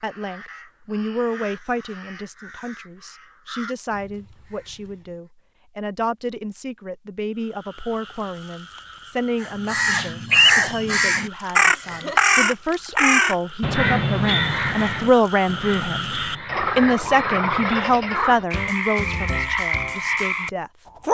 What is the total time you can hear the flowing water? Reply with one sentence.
You can't hear the flowing water here.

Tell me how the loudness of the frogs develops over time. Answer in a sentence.
The loudness of the frogs goes up.